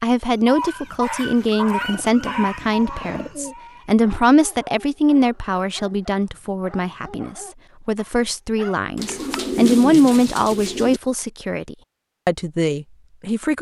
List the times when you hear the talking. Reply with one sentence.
The talking can be heard from 0.0 to 13.5 s.